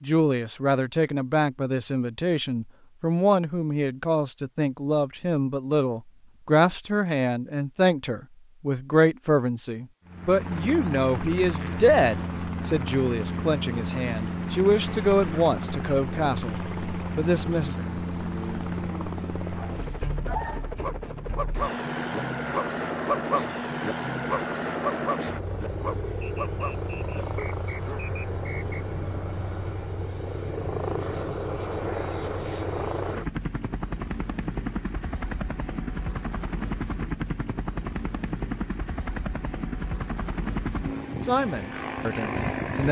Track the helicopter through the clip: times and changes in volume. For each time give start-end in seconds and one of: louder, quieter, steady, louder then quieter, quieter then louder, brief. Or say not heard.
10.1-42.8 steady.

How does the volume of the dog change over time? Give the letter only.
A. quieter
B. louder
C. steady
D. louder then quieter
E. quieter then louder
D.